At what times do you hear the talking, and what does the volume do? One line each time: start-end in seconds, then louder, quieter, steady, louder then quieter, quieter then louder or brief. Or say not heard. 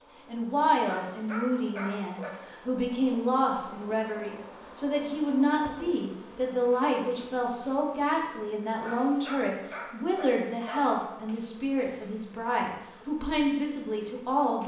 0.2-14.6 steady.